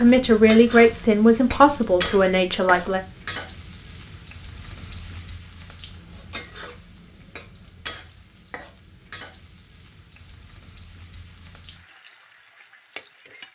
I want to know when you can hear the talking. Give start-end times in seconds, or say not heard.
0.0-3.0.